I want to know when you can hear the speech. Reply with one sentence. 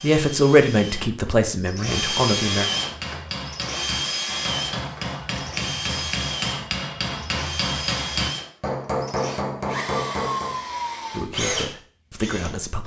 You can hear the speech from 0.0 to 2.6 s and from 11.2 to 12.8 s.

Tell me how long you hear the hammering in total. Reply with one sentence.
You can hear the hammering for 8 seconds altogether.